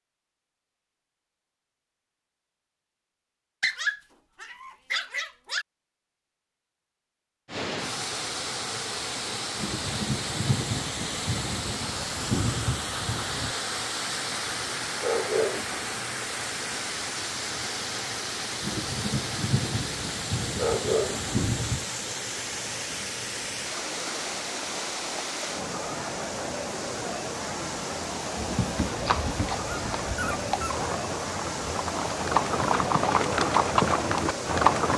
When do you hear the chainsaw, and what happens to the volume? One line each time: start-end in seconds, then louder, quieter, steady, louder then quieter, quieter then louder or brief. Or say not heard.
not heard.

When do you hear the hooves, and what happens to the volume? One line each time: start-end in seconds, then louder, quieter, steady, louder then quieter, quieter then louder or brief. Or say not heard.
29.0-34.9 louder.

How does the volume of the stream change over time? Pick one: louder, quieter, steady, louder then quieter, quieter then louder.
steady.